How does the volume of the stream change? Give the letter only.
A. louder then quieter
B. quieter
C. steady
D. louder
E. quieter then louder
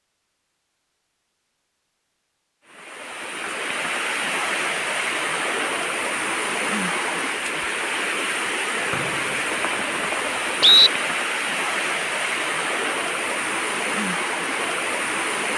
C.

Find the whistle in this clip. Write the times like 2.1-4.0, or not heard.
8.9-10.9.